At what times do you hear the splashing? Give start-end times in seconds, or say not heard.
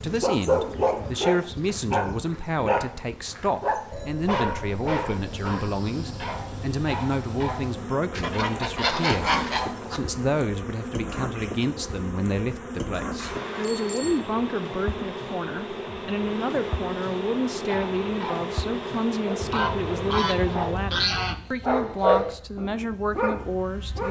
not heard.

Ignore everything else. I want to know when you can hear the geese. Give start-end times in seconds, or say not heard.
8.2-10.0, 19.4-21.4.